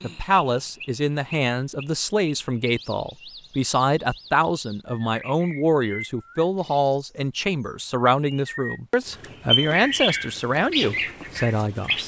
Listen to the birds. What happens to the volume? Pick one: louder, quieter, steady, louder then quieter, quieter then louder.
louder.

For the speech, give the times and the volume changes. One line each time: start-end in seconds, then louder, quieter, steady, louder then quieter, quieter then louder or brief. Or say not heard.
0.0-12.0 steady.